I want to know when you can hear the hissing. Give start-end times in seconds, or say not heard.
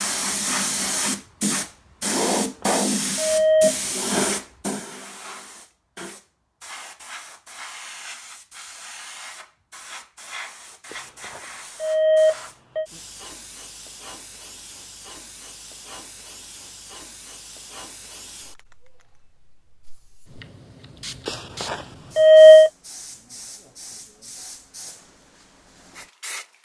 0.0-26.5.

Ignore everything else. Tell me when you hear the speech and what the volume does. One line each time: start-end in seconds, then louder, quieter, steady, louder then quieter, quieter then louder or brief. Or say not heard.
not heard.